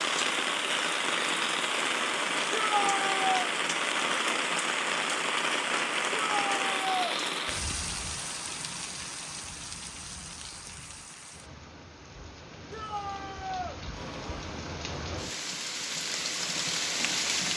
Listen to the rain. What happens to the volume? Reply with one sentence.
The volume of the rain goes down, then up.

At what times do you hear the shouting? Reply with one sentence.
You can hear the shouting from 2.5 to 3.2 s, from 6.2 to 7.2 s and from 12.7 to 13.8 s.